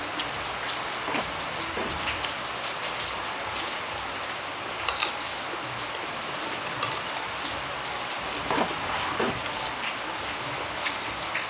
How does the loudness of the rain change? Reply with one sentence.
The loudness of the rain stays about the same.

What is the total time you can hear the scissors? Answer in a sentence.
The scissors can be heard for 3 seconds in total.